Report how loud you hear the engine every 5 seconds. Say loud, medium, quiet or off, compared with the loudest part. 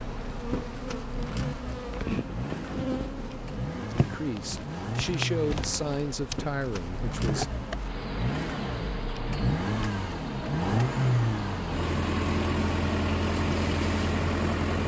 medium, medium, loud.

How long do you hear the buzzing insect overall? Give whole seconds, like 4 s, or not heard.
12 s.